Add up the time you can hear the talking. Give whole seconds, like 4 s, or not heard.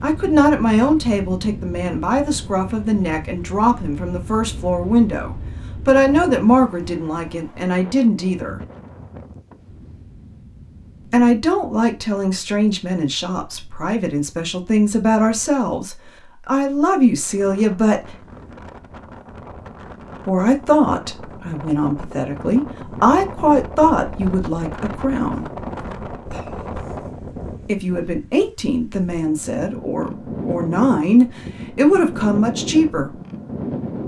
26 s.